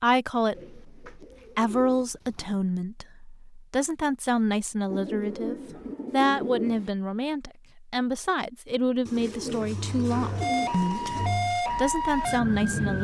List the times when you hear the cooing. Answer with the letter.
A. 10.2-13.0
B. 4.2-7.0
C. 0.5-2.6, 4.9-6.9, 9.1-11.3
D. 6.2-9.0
C.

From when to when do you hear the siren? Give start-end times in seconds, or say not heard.
10.2-13.0.